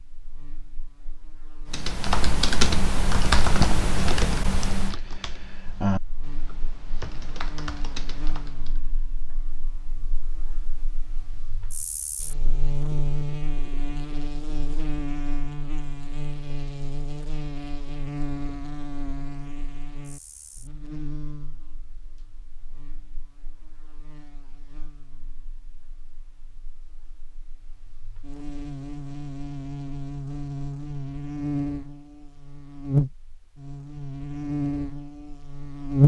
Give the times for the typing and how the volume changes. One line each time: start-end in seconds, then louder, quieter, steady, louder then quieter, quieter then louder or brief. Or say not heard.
1.7-8.8 quieter.